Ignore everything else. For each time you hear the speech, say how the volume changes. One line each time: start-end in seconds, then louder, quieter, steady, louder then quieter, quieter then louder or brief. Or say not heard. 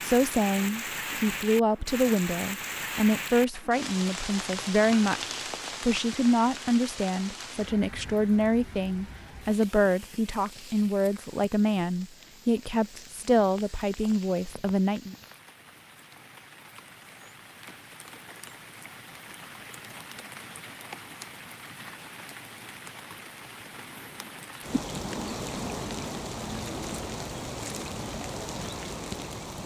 0.0-15.2 steady.